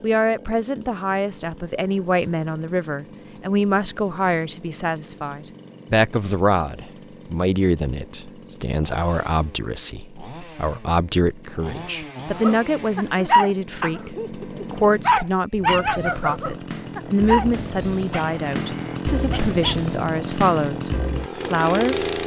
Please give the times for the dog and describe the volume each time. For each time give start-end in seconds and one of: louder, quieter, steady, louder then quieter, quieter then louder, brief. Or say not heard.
12.4-19.9 quieter.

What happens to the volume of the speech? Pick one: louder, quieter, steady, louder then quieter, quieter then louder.
steady.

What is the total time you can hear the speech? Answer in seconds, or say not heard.
22 s.